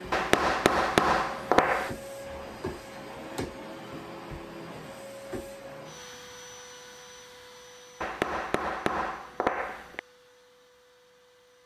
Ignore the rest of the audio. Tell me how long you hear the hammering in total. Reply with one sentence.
You can hear the hammering for 4 seconds altogether.